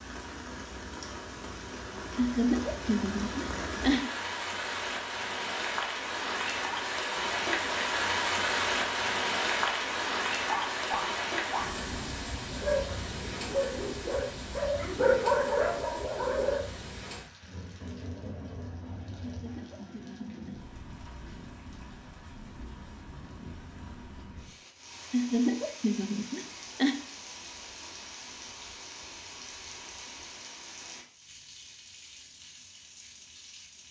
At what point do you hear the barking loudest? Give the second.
15 s.